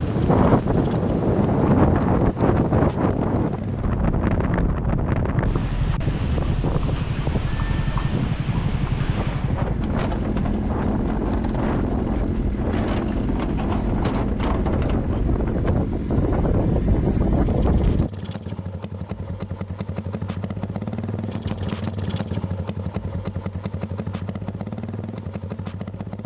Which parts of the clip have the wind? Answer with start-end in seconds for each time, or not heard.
0.0-18.1.